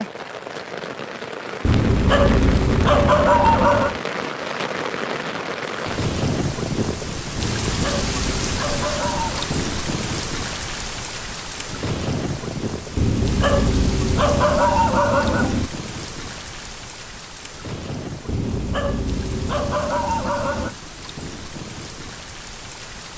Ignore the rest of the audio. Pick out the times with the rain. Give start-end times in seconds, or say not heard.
0.0-23.1.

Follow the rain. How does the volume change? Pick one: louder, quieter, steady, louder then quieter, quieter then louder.
quieter.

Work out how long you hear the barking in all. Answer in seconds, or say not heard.
10 s.